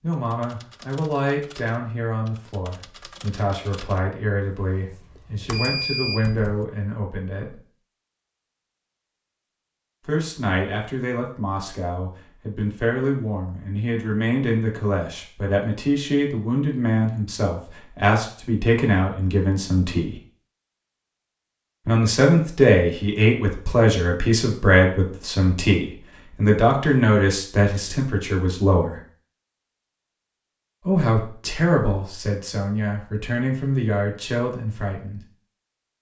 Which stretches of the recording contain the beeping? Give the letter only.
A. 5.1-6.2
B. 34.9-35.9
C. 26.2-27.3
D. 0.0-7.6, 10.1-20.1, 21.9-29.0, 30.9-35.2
A.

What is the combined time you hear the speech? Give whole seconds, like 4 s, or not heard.
29 s.